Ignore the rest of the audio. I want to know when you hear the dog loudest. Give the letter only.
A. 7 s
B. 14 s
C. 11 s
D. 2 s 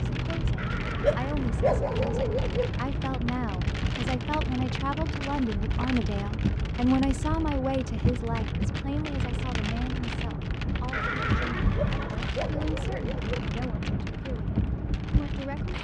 D.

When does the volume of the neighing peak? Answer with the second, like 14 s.
11 s.